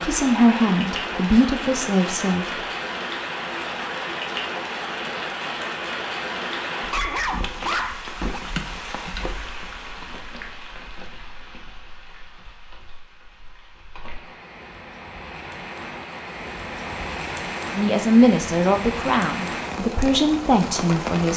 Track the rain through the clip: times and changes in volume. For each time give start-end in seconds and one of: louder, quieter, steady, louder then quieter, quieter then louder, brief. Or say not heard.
0.0-21.3 quieter then louder.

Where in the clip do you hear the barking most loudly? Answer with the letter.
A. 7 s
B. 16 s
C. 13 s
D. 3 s
A.